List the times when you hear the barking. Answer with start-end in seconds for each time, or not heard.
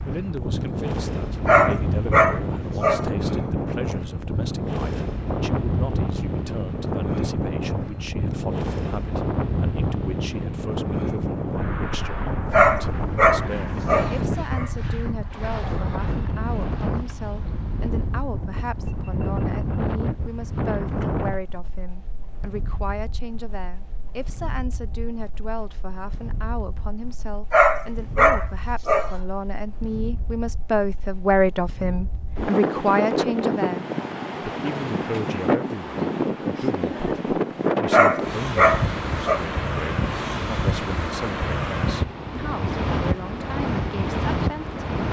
1.4-3.1, 12.5-14.7, 27.5-29.1, 37.9-39.4.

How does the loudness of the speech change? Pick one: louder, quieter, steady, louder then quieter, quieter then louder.
louder then quieter.